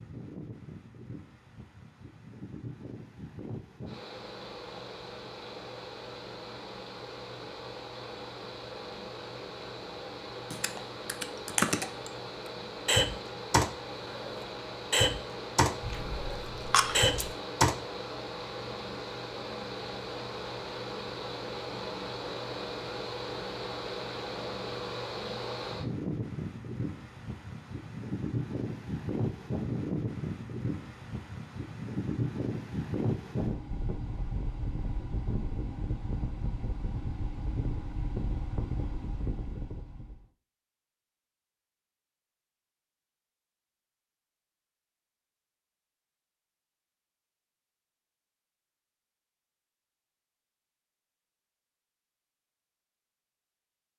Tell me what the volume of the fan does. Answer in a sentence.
The volume of the fan goes up.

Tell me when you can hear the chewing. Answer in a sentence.
The chewing can be heard from 15.8 to 17.3 s.